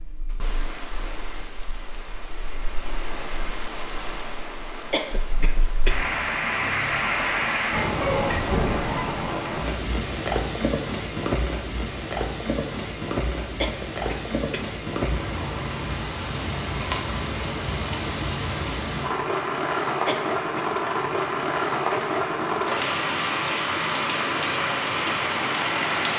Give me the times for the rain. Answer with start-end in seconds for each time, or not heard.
0.0-26.1.